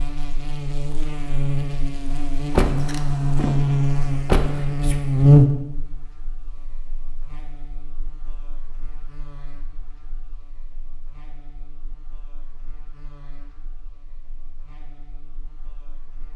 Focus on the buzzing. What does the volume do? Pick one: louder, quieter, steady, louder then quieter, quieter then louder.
louder then quieter.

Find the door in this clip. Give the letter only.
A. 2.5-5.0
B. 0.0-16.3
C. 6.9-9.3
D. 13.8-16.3
A.